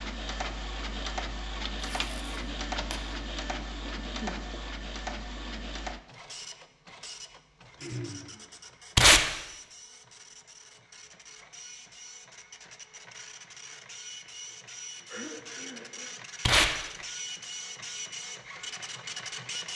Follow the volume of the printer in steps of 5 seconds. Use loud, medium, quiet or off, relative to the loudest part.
loud, medium, medium, loud.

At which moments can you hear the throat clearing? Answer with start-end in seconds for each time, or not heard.
3.9-4.4, 7.8-8.4, 15.1-16.1.